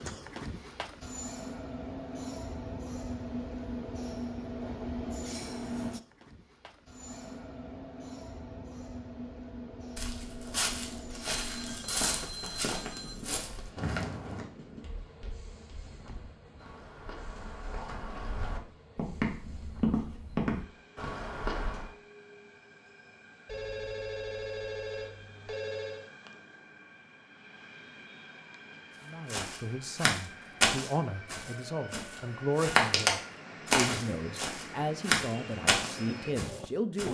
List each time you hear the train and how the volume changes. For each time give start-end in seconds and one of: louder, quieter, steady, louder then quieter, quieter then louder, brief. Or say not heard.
0.0-37.1 quieter then louder.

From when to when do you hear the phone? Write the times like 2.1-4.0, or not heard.
11.5-13.2, 23.4-26.1.